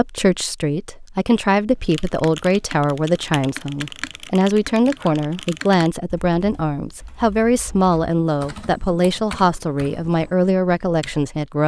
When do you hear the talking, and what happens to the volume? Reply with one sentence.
The talking can be heard from 0.0 to 11.6 s, at a steady volume.